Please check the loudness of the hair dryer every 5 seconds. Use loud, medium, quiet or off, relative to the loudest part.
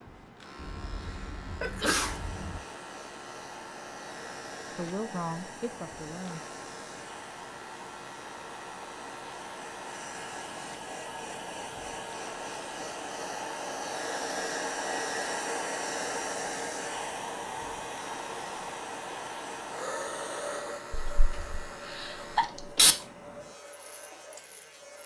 medium, medium, loud, loud, medium.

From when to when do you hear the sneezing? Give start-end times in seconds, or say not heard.
0.6-2.6, 21.1-22.9.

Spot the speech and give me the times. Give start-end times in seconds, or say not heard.
4.7-6.4.